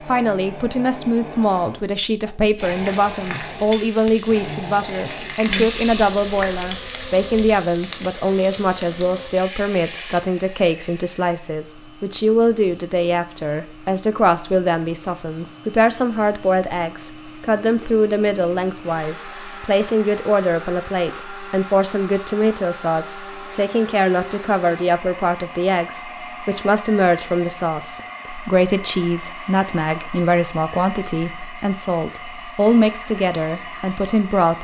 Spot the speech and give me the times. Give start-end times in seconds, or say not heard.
0.1-34.5.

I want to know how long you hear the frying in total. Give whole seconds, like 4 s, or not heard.
8 s.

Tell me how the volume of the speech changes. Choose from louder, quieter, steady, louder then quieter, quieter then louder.
steady.